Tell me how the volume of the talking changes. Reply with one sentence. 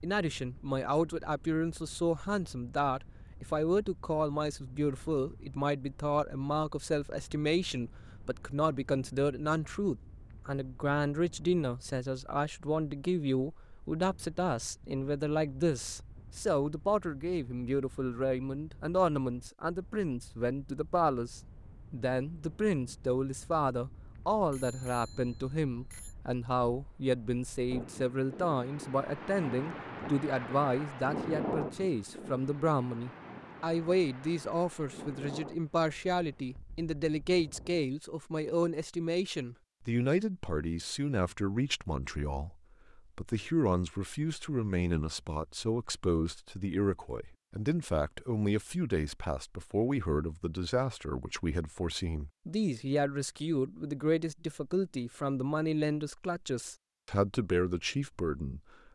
The loudness of the talking stays about the same.